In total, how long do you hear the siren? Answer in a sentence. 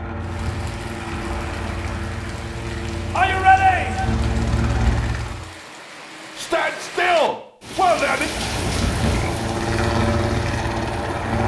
The siren can't be heard in this clip.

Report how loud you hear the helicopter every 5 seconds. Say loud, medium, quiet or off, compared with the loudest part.
medium, loud, loud.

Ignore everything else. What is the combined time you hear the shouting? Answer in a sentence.
The shouting can be heard for 3 seconds in total.